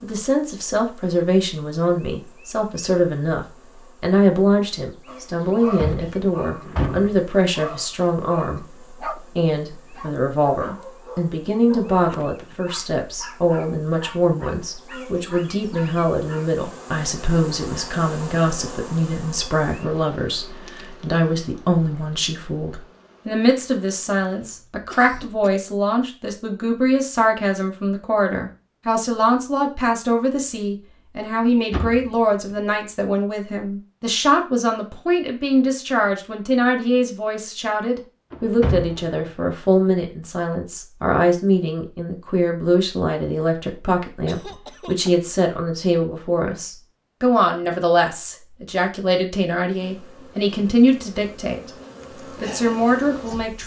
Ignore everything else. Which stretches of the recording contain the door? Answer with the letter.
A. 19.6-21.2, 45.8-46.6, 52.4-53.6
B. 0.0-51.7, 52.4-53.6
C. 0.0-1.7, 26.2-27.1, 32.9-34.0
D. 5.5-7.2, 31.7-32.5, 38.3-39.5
D.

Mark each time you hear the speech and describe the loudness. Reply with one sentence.
You can hear the speech from 0.0 to 51.7 s, at a steady volume; and briefly from 52.4 to 53.6 s.